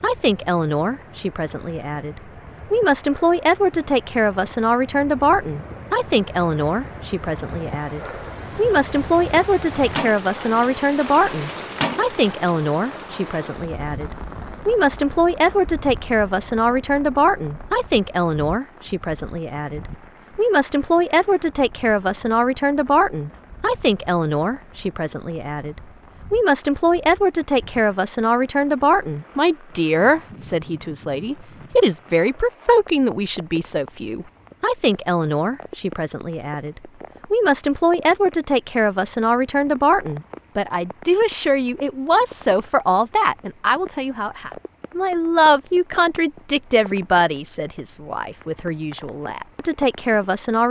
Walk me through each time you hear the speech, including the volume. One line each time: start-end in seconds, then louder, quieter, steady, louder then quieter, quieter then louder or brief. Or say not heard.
0.0-50.6 steady.